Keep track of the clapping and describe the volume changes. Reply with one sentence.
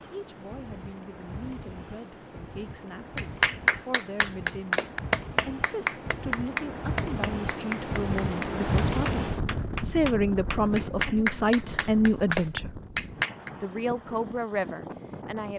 The loudness of the clapping goes down, then up.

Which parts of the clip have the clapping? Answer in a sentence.
The clapping can be heard from 3.1 to 13.5 s.